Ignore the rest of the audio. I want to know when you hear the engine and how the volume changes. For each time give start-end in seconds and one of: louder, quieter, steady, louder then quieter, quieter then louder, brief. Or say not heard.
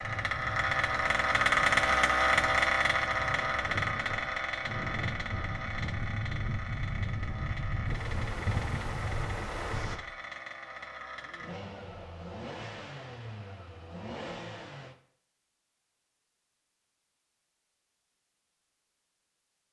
0.0-14.9 quieter.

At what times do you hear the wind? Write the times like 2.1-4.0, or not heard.
0.0-10.0.